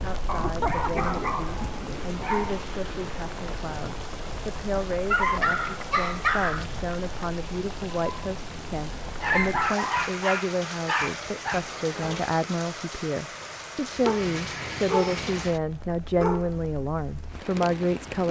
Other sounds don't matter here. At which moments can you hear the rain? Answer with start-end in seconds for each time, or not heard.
0.0-18.2.